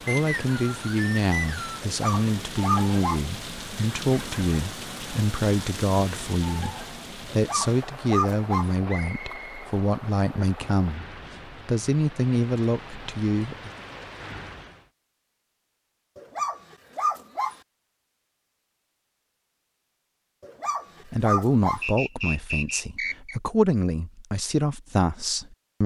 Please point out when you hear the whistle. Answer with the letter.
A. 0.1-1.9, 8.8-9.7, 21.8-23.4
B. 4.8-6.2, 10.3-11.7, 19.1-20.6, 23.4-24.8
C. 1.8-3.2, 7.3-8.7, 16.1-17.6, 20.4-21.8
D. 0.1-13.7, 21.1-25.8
A.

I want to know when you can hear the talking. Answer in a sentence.
The talking can be heard from 0.1 to 13.7 s and from 21.1 to 25.8 s.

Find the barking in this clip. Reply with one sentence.
You can hear the barking from 1.8 to 3.2 s, from 7.3 to 8.7 s, from 16.1 to 17.6 s and from 20.4 to 21.8 s.